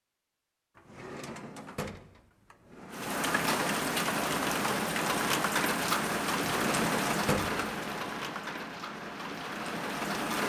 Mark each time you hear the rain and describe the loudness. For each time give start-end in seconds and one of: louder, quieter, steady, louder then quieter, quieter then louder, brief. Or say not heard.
2.9-10.4 quieter.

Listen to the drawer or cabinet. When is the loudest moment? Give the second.
7 s.